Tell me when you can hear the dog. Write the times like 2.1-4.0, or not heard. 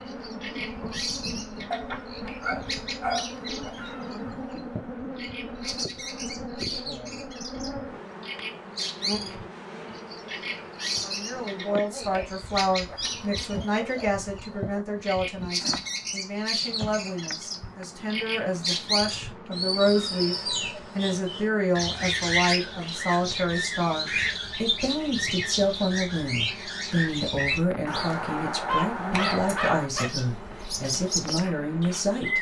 1.7-3.7, 28.6-30.1.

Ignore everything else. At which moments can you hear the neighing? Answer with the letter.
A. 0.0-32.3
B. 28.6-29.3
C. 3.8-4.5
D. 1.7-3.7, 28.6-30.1
C.